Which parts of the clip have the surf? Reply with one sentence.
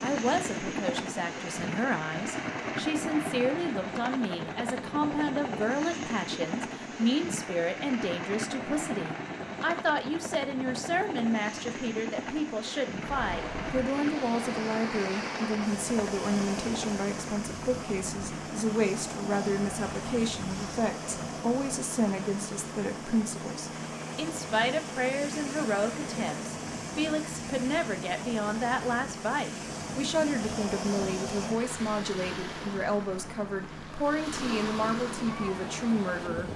The surf can be heard from 12.9 to 36.5 s.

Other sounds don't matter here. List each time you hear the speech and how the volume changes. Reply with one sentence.
You can hear the speech from 0.0 to 36.5 s, at a steady volume.